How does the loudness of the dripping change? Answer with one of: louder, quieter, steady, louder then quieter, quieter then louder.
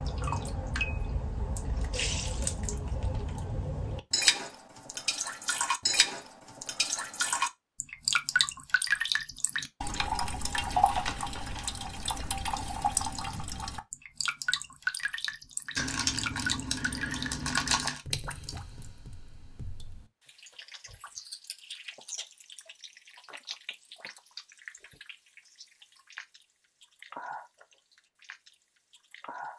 quieter.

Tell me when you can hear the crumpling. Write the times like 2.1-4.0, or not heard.
10.7-11.7, 15.8-18.0.